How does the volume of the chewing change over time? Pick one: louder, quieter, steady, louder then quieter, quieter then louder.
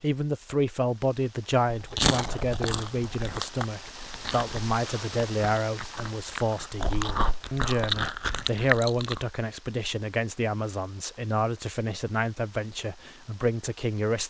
quieter then louder.